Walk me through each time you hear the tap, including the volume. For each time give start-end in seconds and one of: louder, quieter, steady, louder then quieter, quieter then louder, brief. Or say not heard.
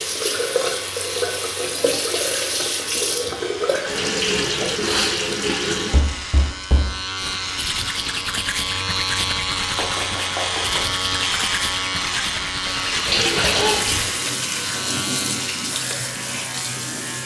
0.0-6.0 steady
12.9-17.2 quieter.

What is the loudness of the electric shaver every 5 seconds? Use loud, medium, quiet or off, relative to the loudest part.
medium, loud, loud, medium.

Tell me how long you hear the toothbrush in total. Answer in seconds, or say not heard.
7 s.